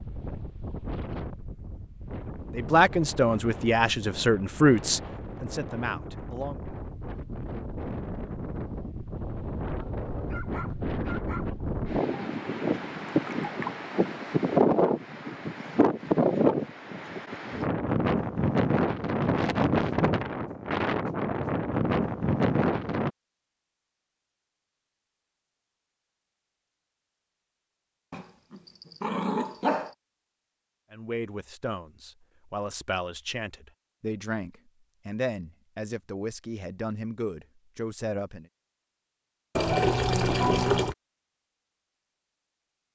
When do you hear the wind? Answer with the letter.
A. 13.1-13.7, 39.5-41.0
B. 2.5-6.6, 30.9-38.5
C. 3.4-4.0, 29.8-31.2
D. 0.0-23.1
D.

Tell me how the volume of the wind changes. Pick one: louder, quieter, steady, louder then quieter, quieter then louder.
louder.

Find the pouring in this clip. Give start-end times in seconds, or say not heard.
13.1-13.7, 39.5-41.0.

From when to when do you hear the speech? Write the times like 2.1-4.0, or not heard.
2.5-6.6, 30.9-38.5.